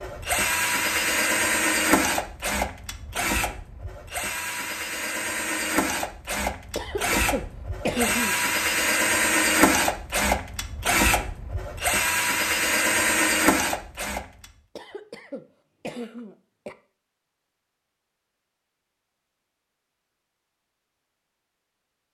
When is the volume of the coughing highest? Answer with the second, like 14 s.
8 s.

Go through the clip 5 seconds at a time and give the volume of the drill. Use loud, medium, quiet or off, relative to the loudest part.
loud, loud, loud, off, off.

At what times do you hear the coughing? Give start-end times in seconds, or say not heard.
6.8-8.3, 14.8-16.8.